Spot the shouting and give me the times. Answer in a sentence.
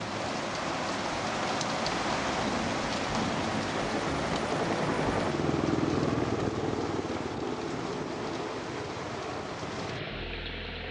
You can't hear the shouting here.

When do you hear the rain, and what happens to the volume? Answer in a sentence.
The rain can be heard from 0.0 to 10.8 s, getting quieter.